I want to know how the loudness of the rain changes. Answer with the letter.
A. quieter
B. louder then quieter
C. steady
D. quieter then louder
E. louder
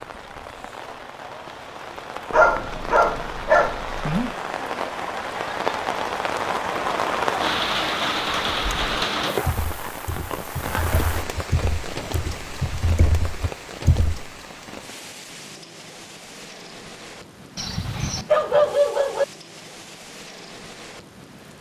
B.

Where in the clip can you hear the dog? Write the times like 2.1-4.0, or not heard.
2.3-4.3, 17.6-19.2.